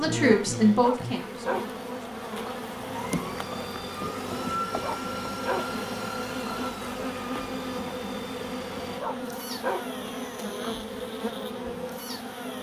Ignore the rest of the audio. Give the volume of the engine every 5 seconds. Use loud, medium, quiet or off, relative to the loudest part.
loud, loud, off.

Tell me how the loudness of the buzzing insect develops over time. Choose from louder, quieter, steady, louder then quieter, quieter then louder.
steady.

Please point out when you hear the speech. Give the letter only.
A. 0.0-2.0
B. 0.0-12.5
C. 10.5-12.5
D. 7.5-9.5
A.